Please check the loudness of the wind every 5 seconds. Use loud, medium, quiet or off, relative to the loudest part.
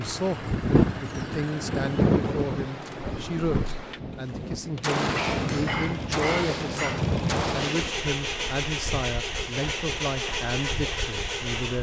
loud, medium, quiet.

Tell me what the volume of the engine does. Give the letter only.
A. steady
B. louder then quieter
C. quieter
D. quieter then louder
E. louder
D.